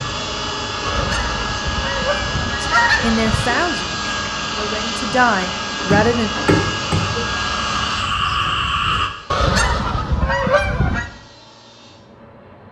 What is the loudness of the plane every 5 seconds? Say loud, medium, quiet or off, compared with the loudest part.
loud, loud, quiet.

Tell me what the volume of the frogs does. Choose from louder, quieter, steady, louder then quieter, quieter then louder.
louder.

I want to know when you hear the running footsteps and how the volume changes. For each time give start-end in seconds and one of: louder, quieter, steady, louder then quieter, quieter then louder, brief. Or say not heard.
not heard.